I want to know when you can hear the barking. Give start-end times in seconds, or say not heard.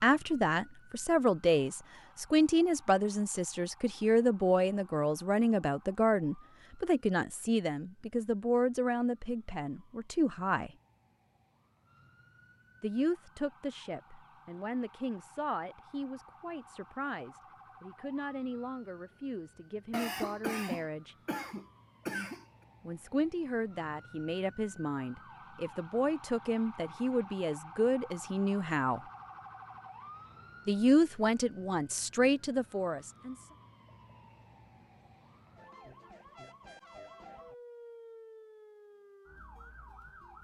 not heard.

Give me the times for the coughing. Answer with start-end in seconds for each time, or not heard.
19.9-22.4.